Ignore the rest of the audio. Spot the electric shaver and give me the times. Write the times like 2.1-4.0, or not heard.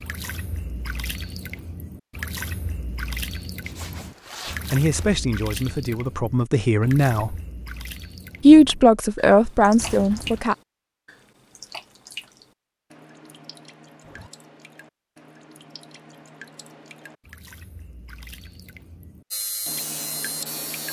19.3-20.8.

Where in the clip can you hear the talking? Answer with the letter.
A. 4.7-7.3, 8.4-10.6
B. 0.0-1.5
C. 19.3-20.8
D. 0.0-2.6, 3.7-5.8
A.